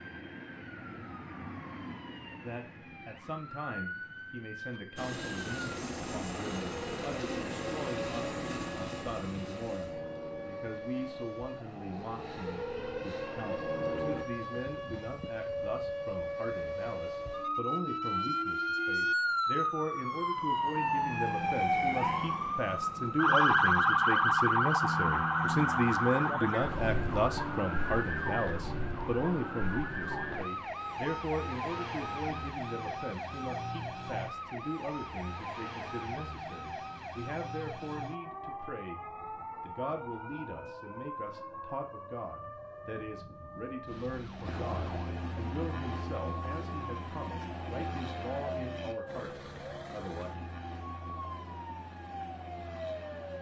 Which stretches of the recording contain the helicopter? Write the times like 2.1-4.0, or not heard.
5.0-14.2, 44.4-53.3.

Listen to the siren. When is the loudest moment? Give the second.
24 s.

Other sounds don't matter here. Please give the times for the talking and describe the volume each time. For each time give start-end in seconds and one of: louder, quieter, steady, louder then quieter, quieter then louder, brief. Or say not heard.
2.4-39.0 louder then quieter
39.6-50.3 steady.